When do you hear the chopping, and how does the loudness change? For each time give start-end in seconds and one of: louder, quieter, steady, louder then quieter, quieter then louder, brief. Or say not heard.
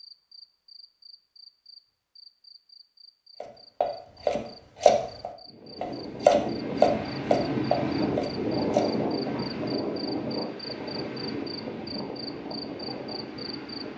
3.4-9.5 louder then quieter.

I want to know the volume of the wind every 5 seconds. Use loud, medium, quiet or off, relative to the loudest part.
off, loud, medium.